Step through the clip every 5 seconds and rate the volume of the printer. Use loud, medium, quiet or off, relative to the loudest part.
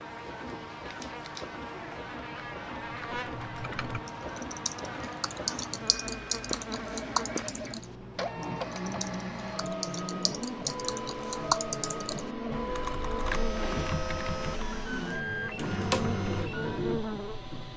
medium, medium, loud, loud.